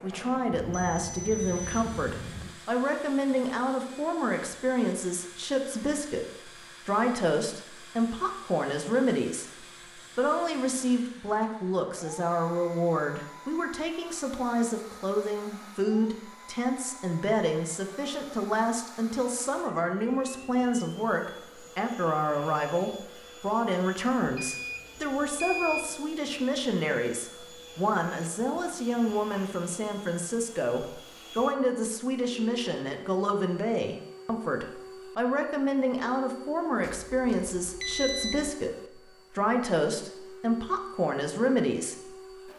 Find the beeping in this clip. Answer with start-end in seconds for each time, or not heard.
0.5-2.5, 24.4-25.9, 36.8-38.5.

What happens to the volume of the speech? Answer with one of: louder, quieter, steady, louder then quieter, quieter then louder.
steady.